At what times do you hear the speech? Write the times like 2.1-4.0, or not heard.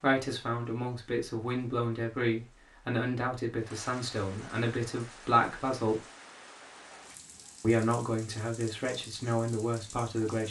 0.0-6.0, 7.6-10.4.